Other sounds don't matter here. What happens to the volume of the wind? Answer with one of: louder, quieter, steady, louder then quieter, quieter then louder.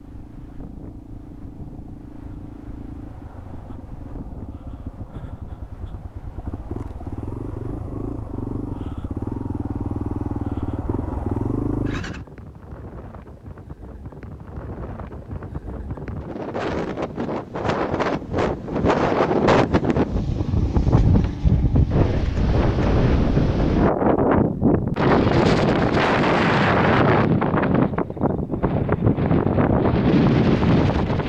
louder.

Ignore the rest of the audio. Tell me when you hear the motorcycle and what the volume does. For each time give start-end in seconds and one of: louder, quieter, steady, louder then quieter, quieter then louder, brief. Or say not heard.
0.0-12.2 louder.